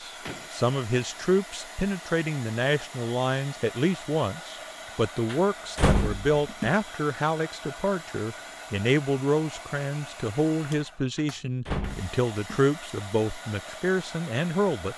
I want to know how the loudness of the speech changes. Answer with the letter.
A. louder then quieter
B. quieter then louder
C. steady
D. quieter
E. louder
C.